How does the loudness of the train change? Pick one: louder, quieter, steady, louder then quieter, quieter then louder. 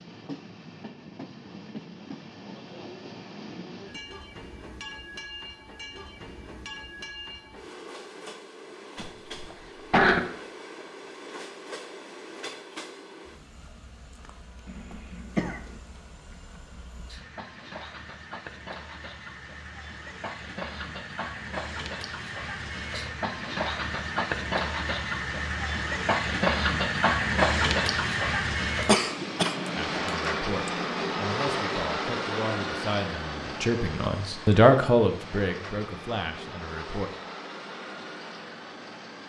louder then quieter.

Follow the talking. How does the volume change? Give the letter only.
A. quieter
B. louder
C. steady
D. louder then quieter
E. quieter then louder
D.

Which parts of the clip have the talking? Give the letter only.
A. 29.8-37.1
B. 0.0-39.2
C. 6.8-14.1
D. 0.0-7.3
A.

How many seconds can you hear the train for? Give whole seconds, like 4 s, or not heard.
39 s.